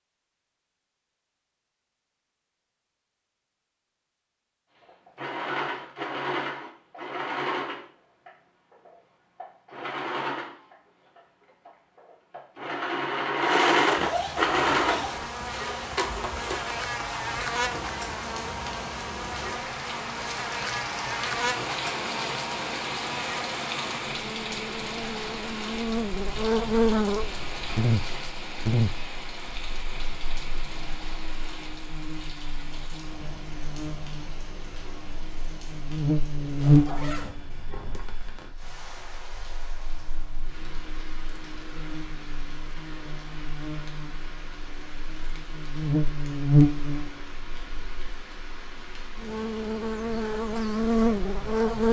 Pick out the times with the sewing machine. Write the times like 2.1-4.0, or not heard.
4.8-16.9.